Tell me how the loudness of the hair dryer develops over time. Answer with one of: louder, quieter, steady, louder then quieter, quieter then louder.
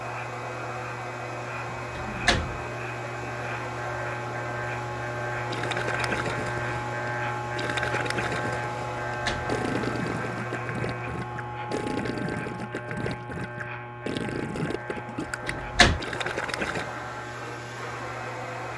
quieter then louder.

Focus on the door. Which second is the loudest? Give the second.
16 s.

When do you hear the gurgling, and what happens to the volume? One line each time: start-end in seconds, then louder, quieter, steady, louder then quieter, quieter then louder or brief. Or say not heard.
5.5-16.9 steady.